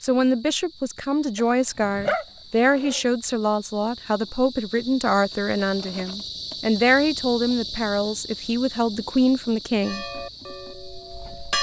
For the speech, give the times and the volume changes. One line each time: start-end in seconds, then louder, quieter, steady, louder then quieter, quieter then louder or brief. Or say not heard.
0.0-10.1 steady.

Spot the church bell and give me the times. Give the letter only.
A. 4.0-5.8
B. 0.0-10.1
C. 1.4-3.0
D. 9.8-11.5
D.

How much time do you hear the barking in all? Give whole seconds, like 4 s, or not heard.
2 s.